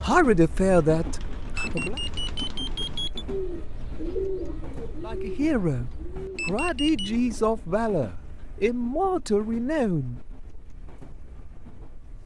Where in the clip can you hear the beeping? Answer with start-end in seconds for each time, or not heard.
1.6-3.2, 6.3-7.1.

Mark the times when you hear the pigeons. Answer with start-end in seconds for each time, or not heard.
0.6-7.6.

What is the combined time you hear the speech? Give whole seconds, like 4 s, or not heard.
7 s.